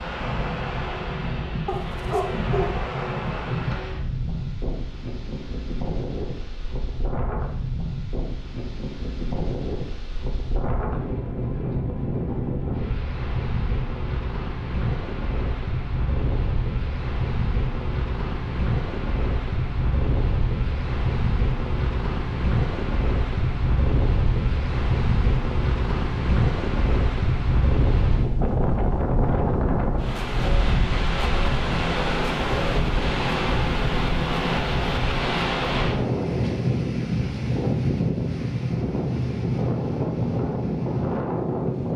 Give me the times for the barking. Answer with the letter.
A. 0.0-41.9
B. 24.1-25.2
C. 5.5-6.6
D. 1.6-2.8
D.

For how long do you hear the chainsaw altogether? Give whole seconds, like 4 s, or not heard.
not heard.